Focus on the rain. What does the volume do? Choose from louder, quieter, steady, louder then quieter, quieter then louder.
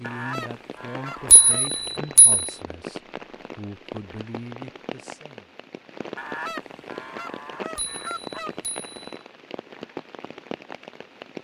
steady.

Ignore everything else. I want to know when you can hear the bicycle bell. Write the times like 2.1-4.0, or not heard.
1.3-2.5, 7.8-9.1.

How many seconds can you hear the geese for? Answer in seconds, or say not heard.
4 s.